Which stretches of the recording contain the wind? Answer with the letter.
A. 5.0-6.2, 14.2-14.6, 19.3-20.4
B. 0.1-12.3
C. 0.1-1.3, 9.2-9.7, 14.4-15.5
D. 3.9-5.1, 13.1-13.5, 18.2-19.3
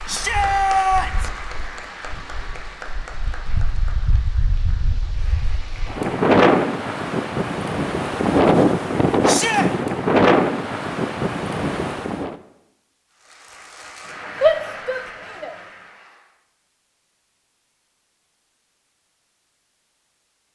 B.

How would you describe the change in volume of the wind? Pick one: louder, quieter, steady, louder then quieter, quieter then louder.
louder.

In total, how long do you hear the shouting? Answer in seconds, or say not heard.
3 s.